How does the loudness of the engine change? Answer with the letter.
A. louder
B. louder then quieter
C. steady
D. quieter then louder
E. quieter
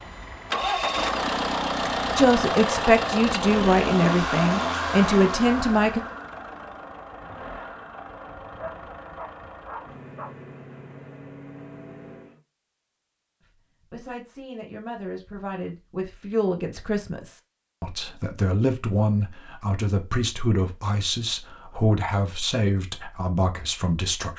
E.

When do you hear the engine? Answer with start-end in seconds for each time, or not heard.
0.0-12.4.